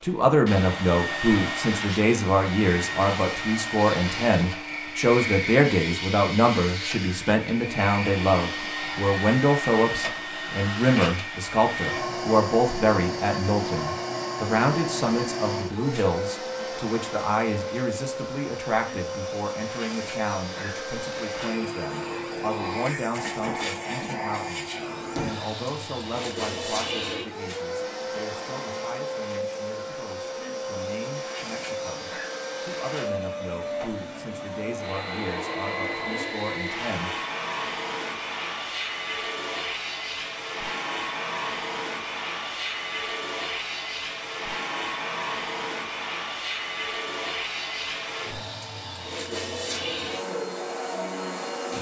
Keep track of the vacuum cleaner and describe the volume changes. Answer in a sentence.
The loudness of the vacuum cleaner stays about the same.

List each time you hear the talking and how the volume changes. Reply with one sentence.
The talking can be heard from 0.0 to 37.1 s, getting quieter.